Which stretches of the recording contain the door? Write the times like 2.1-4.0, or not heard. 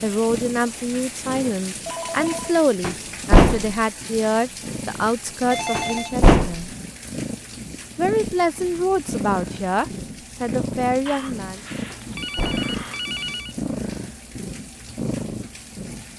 2.8-3.6, 5.8-6.5, 11.9-12.7.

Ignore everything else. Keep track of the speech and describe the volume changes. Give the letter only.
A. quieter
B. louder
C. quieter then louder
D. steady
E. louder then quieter
D.